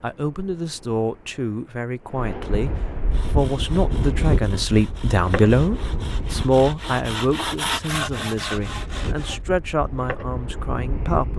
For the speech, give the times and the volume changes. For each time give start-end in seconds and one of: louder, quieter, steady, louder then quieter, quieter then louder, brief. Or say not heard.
0.0-11.3 louder then quieter.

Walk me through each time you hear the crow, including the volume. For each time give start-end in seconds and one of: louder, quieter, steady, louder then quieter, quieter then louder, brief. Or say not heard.
not heard.